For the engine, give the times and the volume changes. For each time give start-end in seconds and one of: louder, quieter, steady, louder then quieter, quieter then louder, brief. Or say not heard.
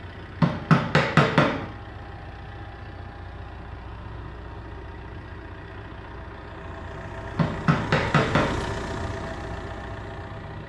0.0-10.6 louder.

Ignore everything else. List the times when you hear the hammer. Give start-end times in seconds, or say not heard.
0.4-1.6, 7.3-8.7.